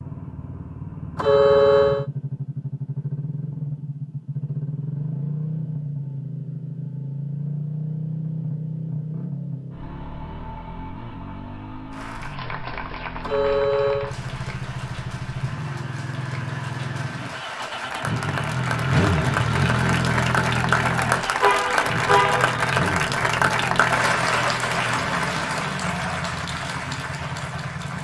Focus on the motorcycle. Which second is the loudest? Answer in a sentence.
The volume of the motorcycle peaks at 19 seconds.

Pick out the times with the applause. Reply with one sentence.
The applause can be heard from 11.9 to 27.9 s.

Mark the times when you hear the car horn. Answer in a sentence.
The car horn can be heard from 1.1 to 2.0 s, from 13.2 to 14.2 s and from 21.4 to 22.6 s.